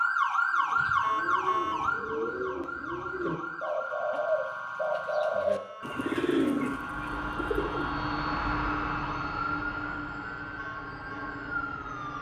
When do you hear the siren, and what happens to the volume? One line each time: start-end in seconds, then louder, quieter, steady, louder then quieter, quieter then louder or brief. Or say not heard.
0.0-12.1 quieter.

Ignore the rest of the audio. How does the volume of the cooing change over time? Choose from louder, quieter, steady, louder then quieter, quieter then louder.
louder.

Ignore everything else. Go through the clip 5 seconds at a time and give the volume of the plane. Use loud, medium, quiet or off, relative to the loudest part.
off, loud, medium.